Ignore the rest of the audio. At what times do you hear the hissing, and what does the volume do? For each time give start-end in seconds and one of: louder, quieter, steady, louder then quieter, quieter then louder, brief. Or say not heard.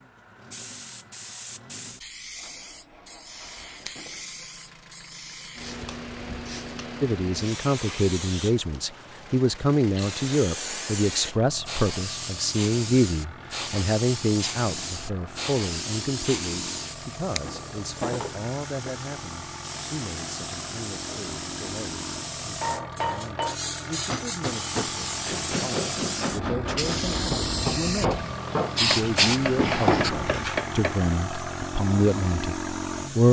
0.0-33.2 louder.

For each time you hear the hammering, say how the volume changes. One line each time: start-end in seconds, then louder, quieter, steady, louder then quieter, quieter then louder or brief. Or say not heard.
22.6-31.1 steady.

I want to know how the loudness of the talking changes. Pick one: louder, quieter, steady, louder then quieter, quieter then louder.
quieter then louder.